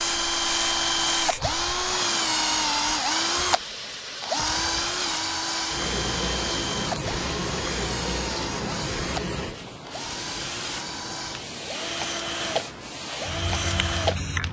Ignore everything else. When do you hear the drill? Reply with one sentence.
You can hear the drill from 0.0 to 14.4 s.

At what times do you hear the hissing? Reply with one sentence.
The hissing can be heard from 0.0 to 14.4 s.